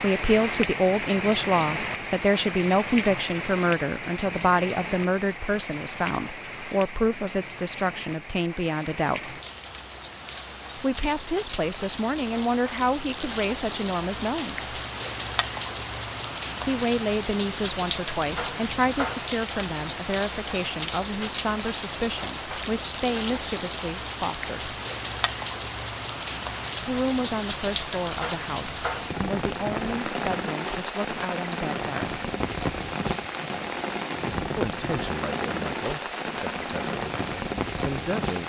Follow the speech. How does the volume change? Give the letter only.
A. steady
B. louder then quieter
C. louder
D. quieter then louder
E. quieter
E.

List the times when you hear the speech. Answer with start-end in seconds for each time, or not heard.
0.0-9.3, 10.8-14.7, 16.6-24.8, 26.8-32.1, 34.5-38.4.